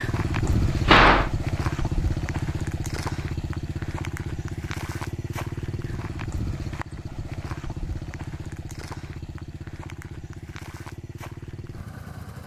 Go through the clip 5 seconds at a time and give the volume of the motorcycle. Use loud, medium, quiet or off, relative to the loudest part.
loud, medium, medium.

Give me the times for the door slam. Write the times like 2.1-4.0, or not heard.
0.4-1.3.